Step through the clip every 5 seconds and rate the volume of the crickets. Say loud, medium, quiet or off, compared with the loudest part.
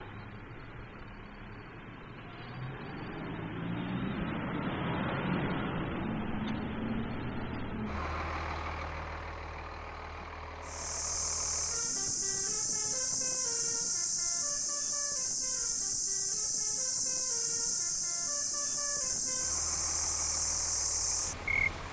off, off, loud, loud, loud.